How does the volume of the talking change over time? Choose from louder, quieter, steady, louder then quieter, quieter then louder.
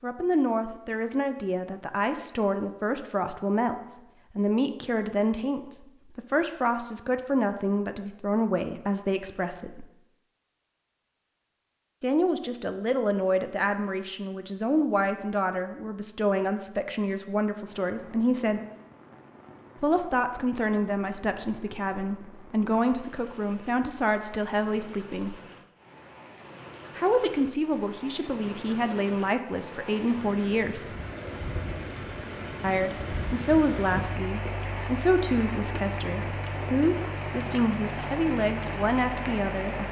steady.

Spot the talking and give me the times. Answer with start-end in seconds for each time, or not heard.
0.0-9.8, 12.0-18.6, 19.8-25.4, 26.9-30.9, 32.6-39.8.